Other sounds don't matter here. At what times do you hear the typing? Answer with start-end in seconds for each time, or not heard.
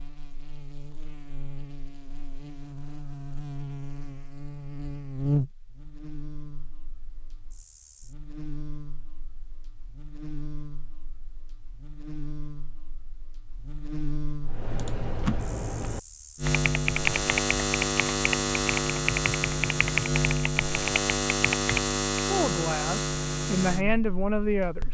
14.4-22.0.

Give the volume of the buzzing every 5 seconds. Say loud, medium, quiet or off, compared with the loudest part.
quiet, medium, quiet, loud, loud.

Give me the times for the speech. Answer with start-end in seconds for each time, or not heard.
22.2-24.8.